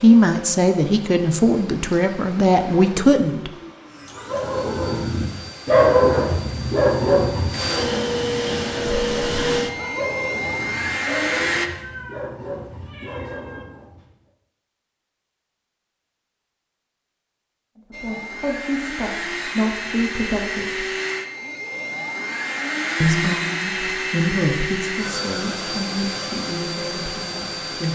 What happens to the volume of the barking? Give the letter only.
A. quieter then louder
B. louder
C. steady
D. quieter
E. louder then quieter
D.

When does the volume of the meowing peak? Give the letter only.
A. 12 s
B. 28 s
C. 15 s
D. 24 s
A.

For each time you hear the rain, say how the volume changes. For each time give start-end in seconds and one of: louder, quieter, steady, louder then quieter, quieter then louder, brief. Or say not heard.
not heard.